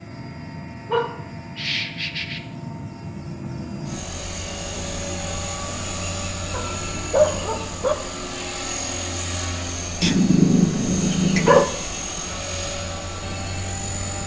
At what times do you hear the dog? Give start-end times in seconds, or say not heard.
0.5-2.4, 6.5-8.0, 10.0-11.7.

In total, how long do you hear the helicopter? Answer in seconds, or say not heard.
14 s.